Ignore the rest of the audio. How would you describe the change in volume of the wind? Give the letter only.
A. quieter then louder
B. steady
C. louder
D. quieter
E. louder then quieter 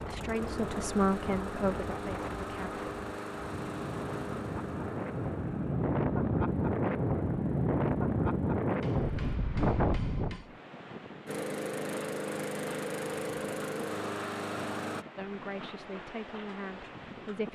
E.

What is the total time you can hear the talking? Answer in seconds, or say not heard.
5 s.